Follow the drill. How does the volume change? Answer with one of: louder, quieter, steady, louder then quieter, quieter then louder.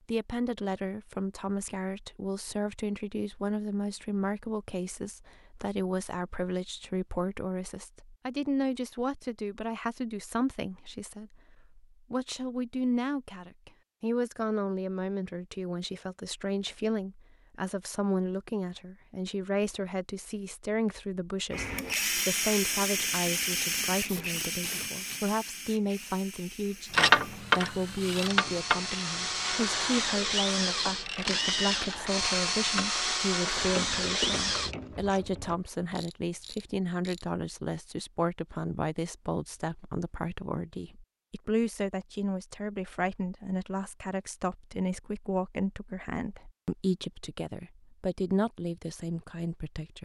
quieter then louder.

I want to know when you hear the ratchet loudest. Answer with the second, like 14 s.
27 s.